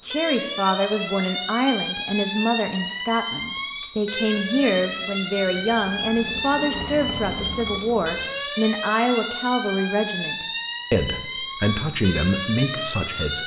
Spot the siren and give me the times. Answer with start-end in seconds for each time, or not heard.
0.0-13.4.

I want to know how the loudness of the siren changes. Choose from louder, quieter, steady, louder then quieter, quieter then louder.
steady.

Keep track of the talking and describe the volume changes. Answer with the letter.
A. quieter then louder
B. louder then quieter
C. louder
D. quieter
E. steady
E.